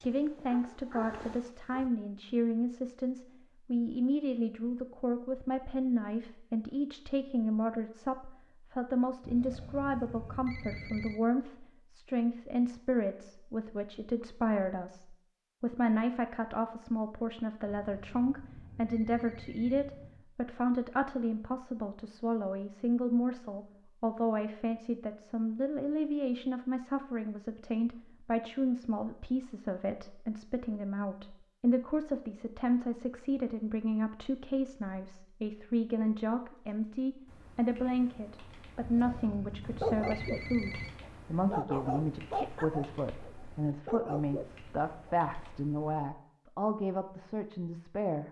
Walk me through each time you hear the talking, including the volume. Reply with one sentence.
The talking can be heard from 0.0 to 48.2 s, at a steady volume.